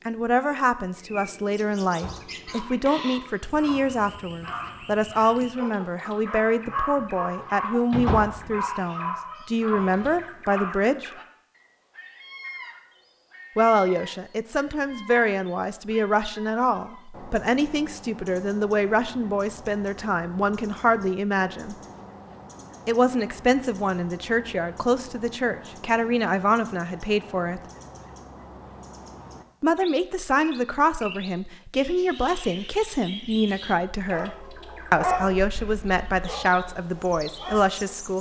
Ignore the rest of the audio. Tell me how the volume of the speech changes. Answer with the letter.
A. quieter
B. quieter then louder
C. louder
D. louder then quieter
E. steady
E.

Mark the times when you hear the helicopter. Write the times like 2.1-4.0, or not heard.
not heard.